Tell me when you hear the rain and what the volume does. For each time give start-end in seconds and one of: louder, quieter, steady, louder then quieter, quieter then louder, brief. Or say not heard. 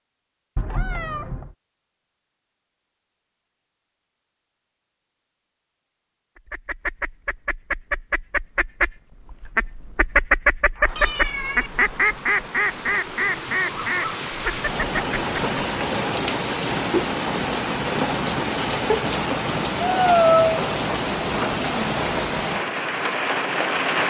10.8-24.0 louder.